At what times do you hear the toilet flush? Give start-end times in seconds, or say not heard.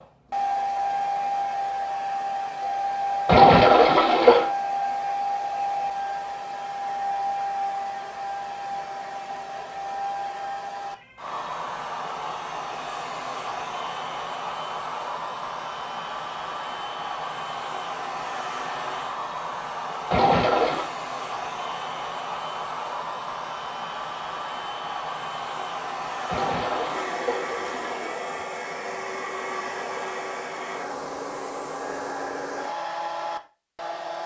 3.2-4.5, 20.1-20.9, 26.2-28.1.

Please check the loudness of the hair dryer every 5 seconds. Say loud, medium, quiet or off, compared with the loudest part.
loud, loud, medium, medium, medium, medium, medium.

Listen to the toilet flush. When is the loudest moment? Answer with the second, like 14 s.
4 s.